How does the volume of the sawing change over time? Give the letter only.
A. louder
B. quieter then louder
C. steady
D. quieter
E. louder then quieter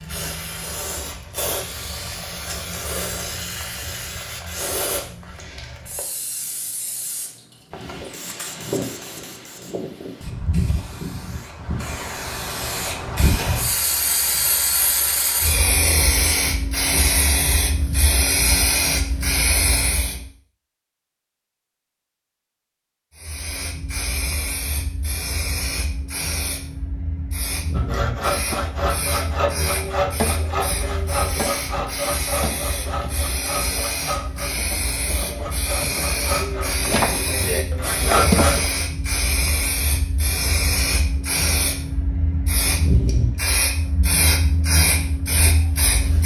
B.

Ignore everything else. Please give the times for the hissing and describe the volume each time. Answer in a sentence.
You can hear the hissing from 0.0 to 20.2 s, getting louder; and from 23.1 to 46.2 s, getting louder.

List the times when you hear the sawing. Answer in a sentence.
You can hear the sawing from 27.8 to 38.7 s.